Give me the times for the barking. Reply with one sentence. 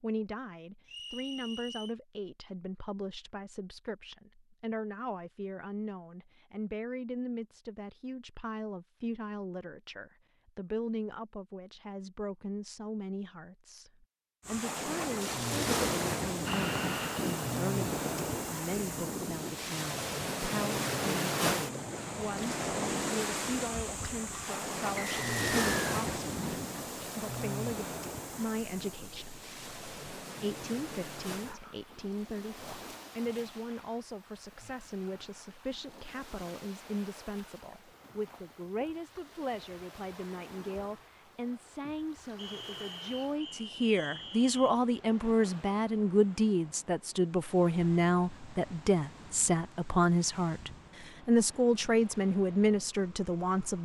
You can't hear the barking here.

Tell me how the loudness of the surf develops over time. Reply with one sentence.
The volume of the surf goes down.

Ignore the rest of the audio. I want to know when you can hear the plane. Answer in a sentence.
You can hear the plane from 16.4 to 19.6 s.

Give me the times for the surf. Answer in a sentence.
You can hear the surf from 14.4 to 53.8 s.